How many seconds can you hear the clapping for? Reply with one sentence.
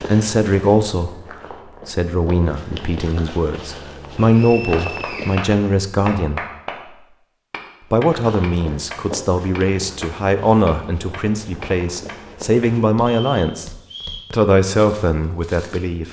You can hear the clapping for 8 seconds altogether.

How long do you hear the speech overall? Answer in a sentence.
The speech can be heard for 13 seconds in total.